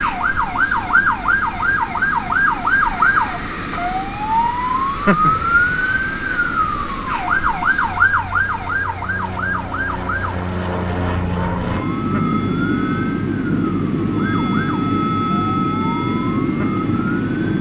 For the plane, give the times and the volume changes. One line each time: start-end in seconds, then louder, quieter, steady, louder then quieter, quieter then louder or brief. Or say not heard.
0.0-17.5 louder.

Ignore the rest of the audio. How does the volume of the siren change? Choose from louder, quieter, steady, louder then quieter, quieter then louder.
quieter.